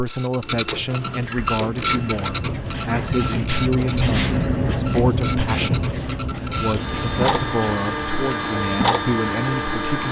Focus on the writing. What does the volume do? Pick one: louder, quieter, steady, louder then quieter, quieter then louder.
louder then quieter.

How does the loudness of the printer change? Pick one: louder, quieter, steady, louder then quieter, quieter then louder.
quieter then louder.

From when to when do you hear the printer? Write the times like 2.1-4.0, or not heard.
0.0-10.0.